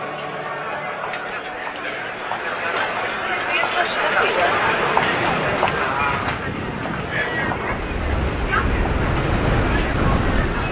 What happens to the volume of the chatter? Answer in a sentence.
The volume of the chatter goes up, then down.